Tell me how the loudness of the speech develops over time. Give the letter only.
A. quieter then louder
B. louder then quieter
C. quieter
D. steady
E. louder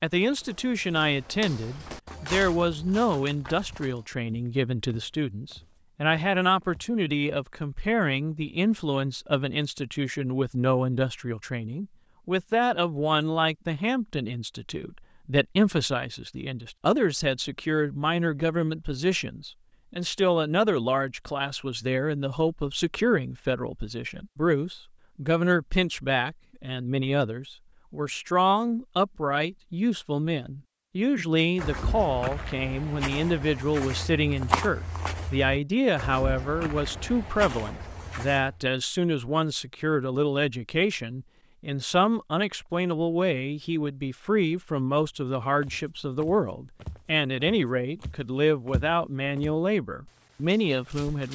D.